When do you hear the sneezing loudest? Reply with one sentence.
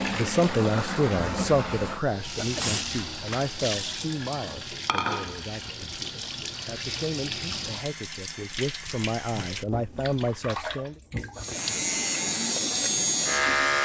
The volume of the sneezing peaks at 3 seconds.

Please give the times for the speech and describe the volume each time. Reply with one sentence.
You can hear the speech from 0.1 to 10.9 s, getting quieter then louder.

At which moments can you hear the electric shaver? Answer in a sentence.
The electric shaver can be heard from 11.3 to 13.8 s.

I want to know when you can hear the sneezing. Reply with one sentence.
You can hear the sneezing from 2.4 to 3.0 s and from 11.3 to 11.8 s.